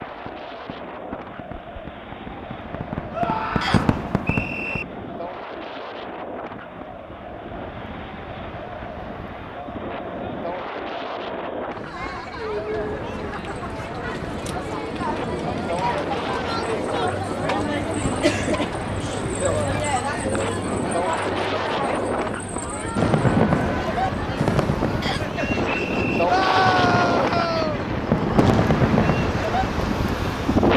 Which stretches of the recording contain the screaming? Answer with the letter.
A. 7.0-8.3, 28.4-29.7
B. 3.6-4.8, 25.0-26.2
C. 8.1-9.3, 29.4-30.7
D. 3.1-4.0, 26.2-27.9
D.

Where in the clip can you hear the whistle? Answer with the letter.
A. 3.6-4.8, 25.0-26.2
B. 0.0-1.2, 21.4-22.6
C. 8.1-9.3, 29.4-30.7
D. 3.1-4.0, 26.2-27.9
A.